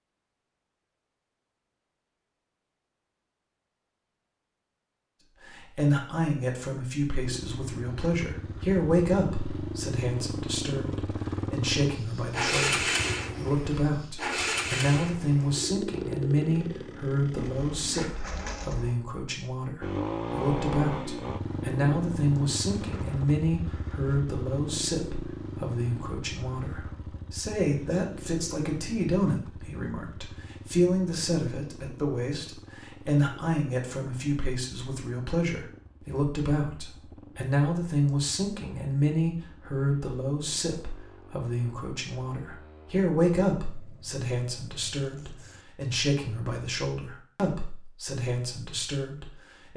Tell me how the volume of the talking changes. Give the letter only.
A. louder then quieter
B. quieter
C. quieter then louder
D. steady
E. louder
D.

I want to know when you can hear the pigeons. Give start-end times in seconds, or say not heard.
17.5-19.0.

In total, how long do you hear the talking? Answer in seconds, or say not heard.
44 s.